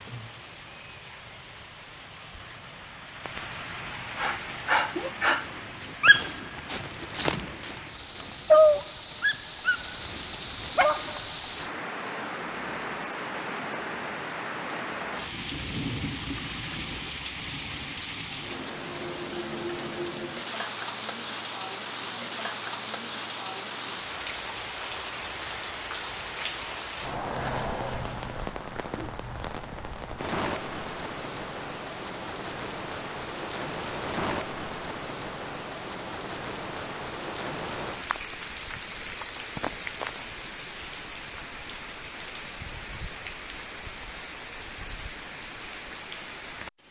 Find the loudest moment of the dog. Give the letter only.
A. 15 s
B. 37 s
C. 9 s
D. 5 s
C.